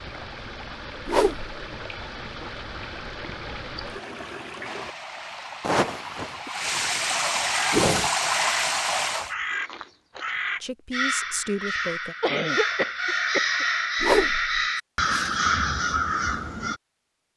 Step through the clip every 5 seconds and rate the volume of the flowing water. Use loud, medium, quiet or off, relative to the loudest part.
medium, loud, off, off.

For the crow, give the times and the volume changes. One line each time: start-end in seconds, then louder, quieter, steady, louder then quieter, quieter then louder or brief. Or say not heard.
7.5-16.8 louder.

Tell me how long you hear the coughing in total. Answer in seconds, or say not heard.
2 s.